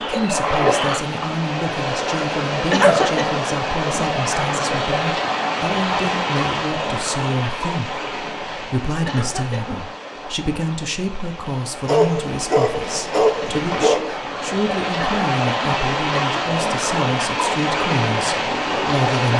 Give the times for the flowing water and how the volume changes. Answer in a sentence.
You can hear the flowing water from 0.0 to 19.3 s, getting quieter then louder.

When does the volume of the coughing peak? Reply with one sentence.
The volume of the coughing peaks at 3 seconds.